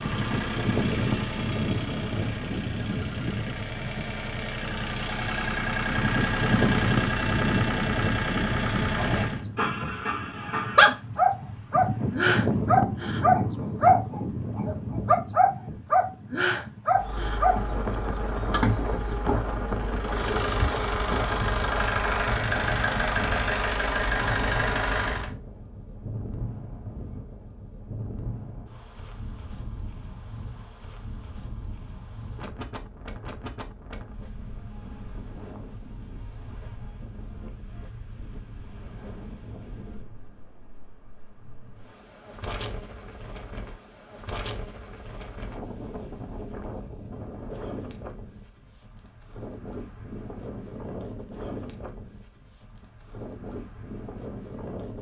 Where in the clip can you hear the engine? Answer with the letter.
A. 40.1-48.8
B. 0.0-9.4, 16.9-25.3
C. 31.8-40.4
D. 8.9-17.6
B.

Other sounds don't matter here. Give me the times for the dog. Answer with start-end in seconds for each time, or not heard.
8.9-17.6.